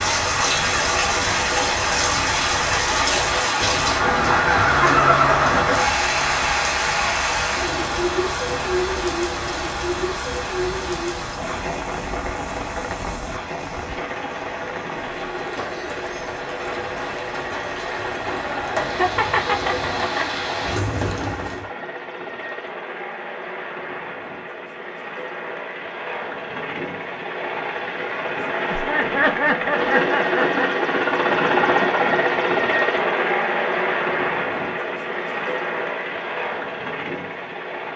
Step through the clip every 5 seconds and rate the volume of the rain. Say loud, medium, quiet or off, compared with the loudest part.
loud, loud, medium, medium, medium, off, off, off.